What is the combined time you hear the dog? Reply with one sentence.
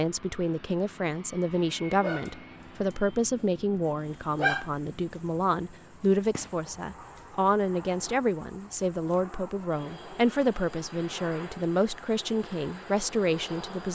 The dog can be heard for 3 seconds in total.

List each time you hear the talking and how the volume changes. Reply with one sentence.
You can hear the talking from 0.0 to 13.9 s, at a steady volume.